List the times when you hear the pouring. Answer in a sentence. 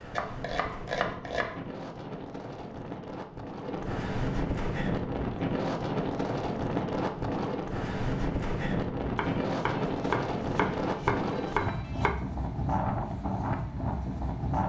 The pouring can't be heard in this clip.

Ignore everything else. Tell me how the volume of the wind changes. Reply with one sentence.
The loudness of the wind goes up.